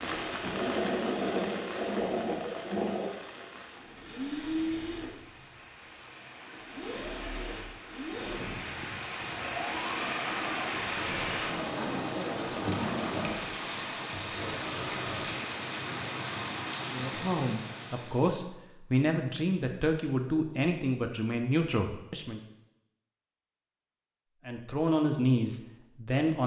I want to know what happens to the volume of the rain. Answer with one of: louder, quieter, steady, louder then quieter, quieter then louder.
quieter then louder.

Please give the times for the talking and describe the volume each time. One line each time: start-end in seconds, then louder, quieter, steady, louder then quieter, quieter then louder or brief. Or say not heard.
16.9-22.4 steady
24.4-26.4 brief.